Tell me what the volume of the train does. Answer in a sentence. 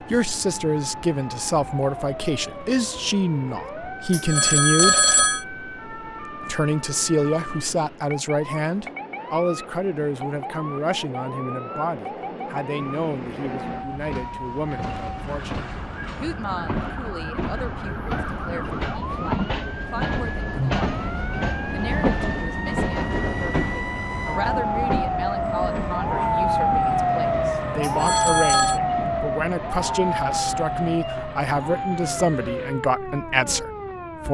The loudness of the train goes up, then down.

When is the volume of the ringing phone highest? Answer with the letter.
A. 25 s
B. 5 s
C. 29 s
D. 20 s
B.